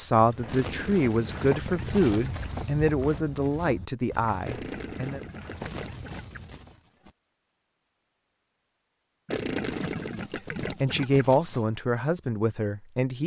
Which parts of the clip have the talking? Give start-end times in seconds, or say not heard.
0.0-5.2, 10.1-13.2.